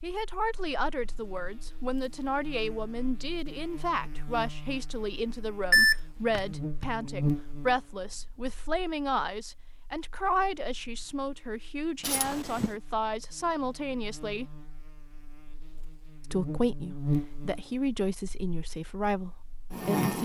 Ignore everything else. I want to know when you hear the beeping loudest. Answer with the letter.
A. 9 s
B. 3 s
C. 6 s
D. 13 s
C.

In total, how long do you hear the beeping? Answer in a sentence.
You can hear the beeping for 2 seconds altogether.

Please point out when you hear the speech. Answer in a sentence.
The speech can be heard from 0.0 to 14.4 s and from 16.2 to 20.1 s.